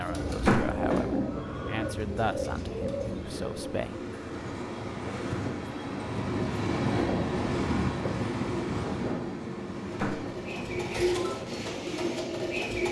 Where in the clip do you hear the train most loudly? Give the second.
7 s.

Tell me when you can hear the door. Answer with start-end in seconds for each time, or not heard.
0.5-0.9, 9.9-10.3.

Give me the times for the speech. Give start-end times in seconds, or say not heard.
0.0-4.0.